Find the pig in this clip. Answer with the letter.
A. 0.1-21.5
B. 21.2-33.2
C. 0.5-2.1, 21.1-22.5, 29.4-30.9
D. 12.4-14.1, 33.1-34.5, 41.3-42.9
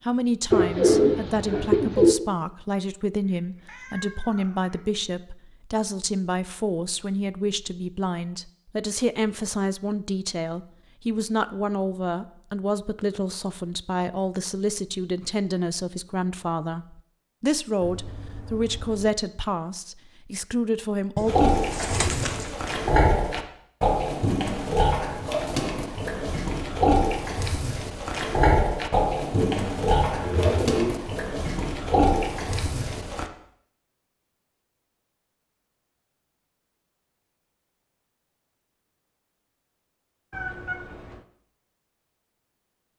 B.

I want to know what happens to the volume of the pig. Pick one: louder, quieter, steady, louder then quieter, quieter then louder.
steady.